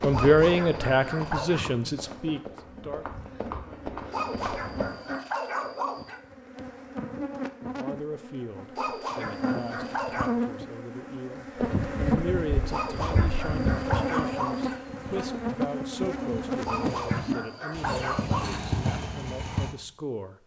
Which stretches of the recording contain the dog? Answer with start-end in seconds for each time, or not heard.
0.1-1.6, 4.1-6.2, 8.8-10.3, 12.7-14.8, 16.6-18.5.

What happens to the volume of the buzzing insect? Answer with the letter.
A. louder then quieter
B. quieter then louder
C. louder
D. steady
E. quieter
C.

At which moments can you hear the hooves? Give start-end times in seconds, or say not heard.
0.0-4.9, 11.6-19.8.